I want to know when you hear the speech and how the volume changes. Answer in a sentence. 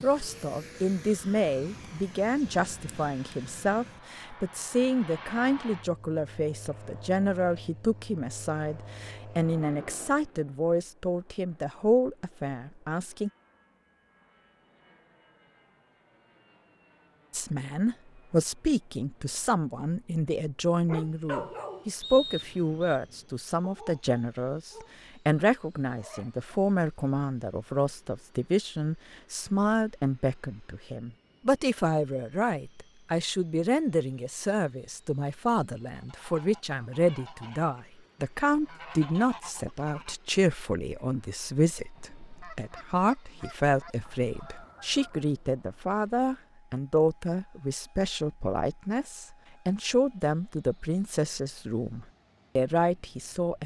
You can hear the speech from 0.0 to 13.3 s, at a steady volume; and from 17.3 to 53.6 s, at a steady volume.